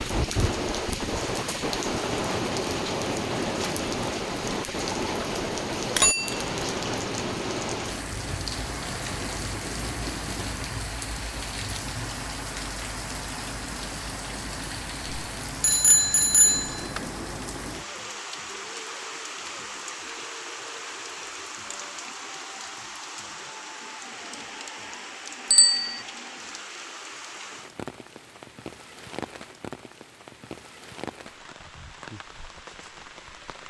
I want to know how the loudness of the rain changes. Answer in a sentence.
The volume of the rain goes down.